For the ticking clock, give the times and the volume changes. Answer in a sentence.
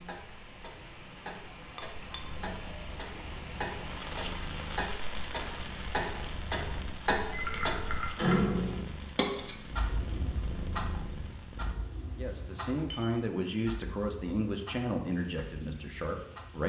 You can hear the ticking clock from 0.0 to 16.6 s, getting louder then quieter.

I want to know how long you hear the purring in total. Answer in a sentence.
The purring can be heard for 10 seconds in total.